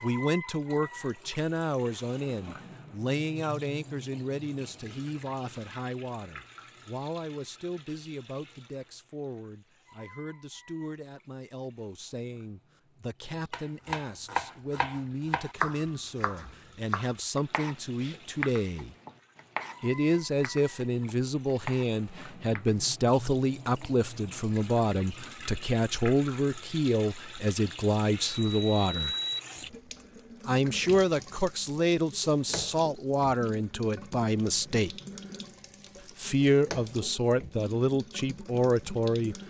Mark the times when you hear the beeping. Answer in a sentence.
You can hear the beeping from 28.4 to 29.4 s.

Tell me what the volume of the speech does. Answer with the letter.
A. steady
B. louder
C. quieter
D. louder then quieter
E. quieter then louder
E.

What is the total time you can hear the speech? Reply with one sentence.
The speech can be heard for 36 seconds in total.